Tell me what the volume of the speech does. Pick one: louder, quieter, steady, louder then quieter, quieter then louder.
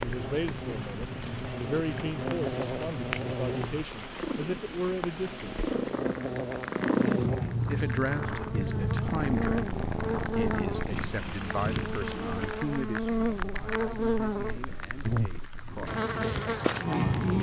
quieter.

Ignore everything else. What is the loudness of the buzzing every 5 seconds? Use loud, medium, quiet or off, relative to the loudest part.
medium, medium, loud, loud.